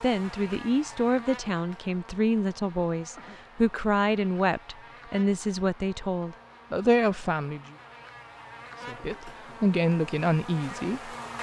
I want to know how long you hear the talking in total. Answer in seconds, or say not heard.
10 s.